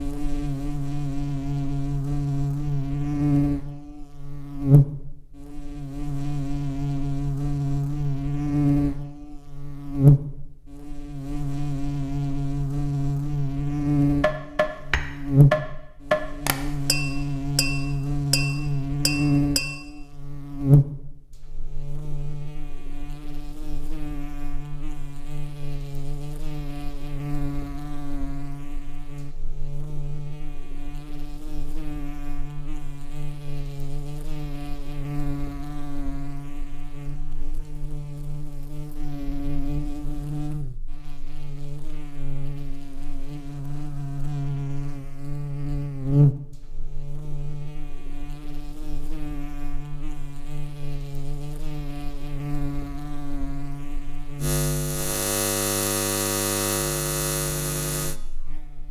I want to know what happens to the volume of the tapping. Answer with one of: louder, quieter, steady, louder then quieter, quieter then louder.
quieter.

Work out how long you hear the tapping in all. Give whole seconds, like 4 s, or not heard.
6 s.